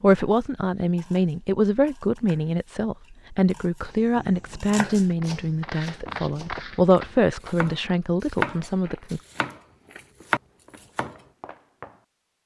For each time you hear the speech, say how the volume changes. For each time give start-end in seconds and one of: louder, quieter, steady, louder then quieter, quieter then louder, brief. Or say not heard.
0.0-9.2 steady.